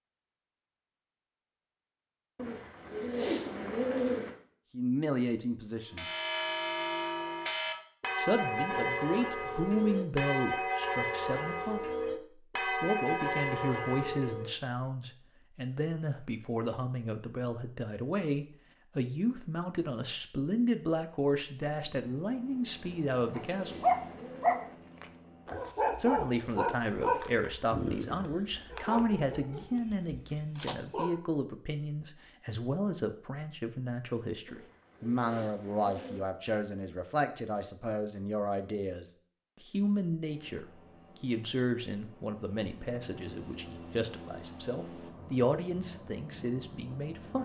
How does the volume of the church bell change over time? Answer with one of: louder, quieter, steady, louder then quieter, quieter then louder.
steady.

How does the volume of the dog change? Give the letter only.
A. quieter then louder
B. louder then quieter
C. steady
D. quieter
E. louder
D.